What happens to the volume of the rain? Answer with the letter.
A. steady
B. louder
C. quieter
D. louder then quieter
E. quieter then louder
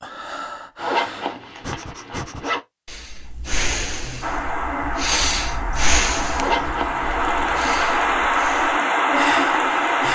B.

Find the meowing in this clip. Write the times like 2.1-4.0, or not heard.
not heard.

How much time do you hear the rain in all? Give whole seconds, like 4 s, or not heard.
6 s.